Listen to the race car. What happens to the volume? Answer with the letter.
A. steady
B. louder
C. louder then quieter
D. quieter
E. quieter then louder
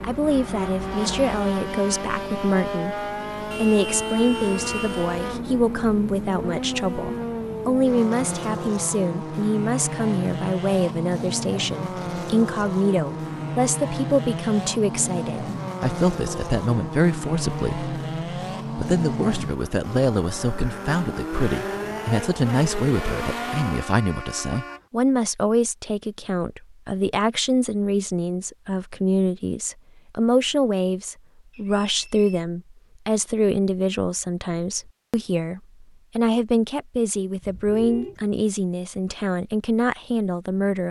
A.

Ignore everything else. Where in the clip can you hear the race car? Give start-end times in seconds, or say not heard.
0.0-24.0.